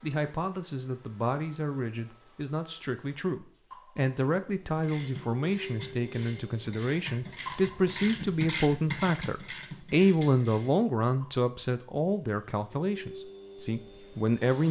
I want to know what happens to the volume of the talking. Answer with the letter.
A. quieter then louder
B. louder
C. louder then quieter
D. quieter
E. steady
C.